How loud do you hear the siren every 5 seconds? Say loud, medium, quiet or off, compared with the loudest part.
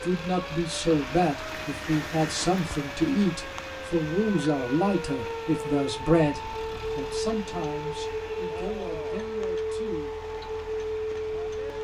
medium, loud, loud.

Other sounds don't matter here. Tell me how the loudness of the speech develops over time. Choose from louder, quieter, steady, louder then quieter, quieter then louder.
quieter.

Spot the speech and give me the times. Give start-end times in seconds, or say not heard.
0.0-10.1.